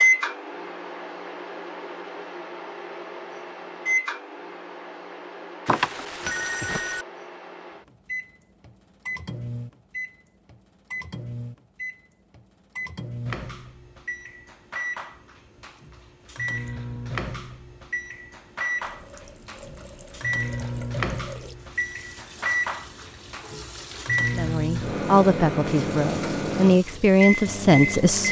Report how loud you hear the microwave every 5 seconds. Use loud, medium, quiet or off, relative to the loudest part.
loud, medium, medium, medium, loud, loud.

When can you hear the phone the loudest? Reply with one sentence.
The loudest moment of the phone is at 6 seconds.